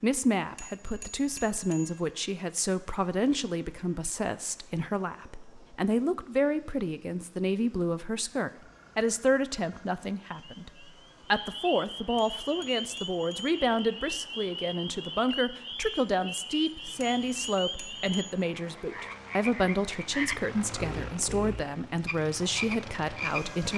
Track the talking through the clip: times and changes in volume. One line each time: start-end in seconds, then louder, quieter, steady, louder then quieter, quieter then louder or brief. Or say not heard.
0.0-23.7 steady.